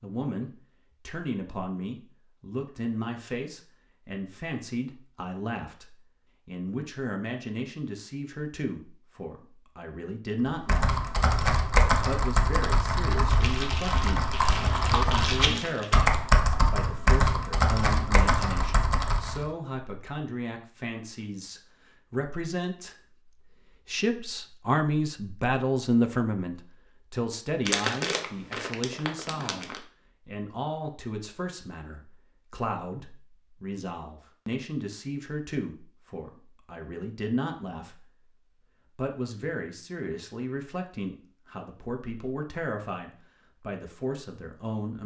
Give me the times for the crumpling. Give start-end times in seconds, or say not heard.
13.2-16.0, 27.6-29.8.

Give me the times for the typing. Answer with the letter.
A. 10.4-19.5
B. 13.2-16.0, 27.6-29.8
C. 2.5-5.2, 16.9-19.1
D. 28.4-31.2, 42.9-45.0
A.